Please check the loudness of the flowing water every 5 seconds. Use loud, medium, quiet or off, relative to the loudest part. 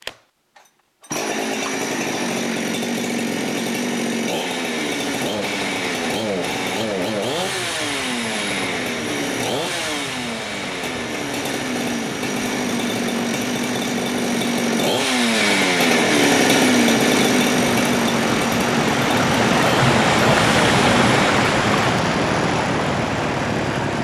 off, quiet, quiet, loud, loud.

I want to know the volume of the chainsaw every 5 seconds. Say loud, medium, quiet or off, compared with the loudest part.
medium, medium, medium, loud, medium.